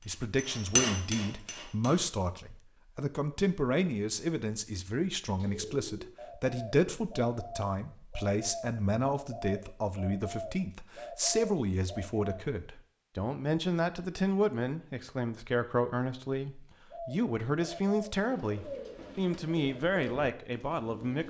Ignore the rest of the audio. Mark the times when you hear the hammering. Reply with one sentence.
The hammering can be heard from 0.0 to 2.0 s.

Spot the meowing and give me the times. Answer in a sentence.
The meowing can't be heard in this clip.